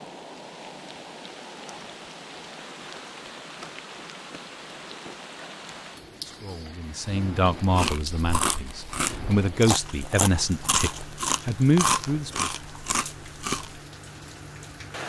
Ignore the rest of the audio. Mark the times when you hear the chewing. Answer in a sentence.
The chewing can be heard from 7.5 to 13.8 s.